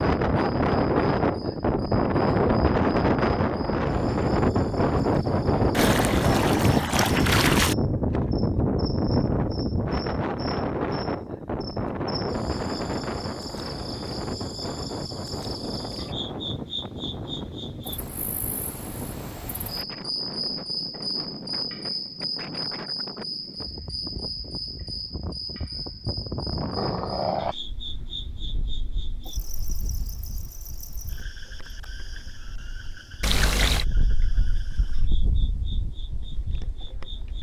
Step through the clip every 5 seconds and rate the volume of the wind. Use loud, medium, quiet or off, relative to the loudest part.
loud, loud, medium, quiet, quiet, quiet, quiet, quiet.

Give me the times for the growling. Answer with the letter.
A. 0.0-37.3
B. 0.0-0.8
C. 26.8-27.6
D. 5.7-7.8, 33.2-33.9
C.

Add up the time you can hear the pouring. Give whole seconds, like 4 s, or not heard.
3 s.